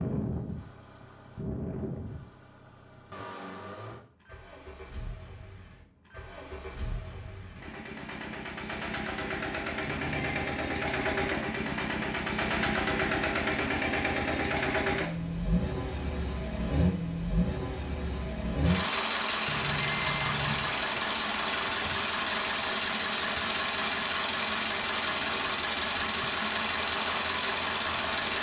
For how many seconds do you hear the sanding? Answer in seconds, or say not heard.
not heard.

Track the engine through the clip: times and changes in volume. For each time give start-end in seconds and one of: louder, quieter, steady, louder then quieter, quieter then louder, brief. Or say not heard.
0.0-28.3 louder.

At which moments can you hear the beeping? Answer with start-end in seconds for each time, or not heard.
9.8-10.6, 19.4-20.8.